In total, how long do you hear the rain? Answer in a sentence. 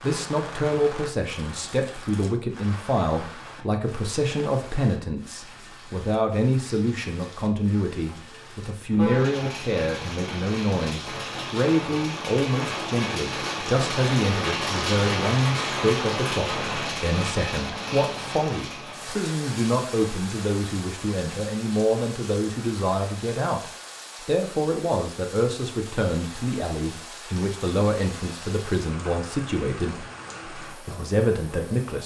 You can hear the rain for 32 seconds altogether.